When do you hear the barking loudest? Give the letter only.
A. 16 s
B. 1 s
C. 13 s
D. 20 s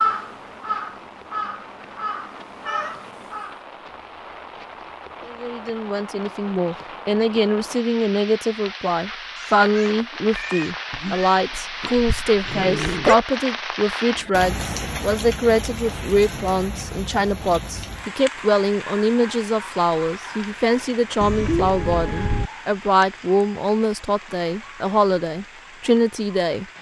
C.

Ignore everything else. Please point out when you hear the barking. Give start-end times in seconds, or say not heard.
10.9-13.2.